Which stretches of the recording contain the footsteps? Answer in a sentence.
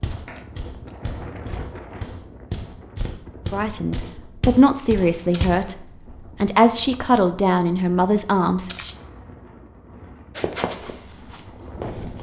You can hear the footsteps from 0.0 to 5.7 s and from 10.3 to 12.1 s.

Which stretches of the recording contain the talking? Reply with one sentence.
You can hear the talking from 3.5 to 8.9 s.